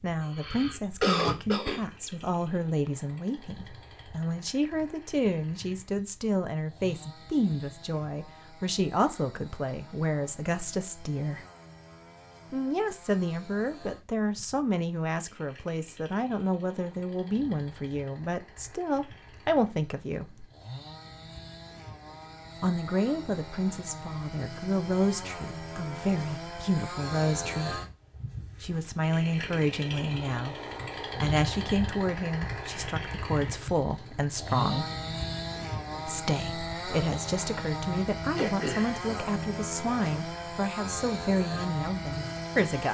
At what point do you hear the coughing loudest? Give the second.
1 s.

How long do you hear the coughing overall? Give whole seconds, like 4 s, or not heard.
2 s.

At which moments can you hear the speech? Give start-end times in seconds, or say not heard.
0.0-11.4, 12.5-20.4, 22.6-27.8, 28.6-34.9, 36.0-42.8.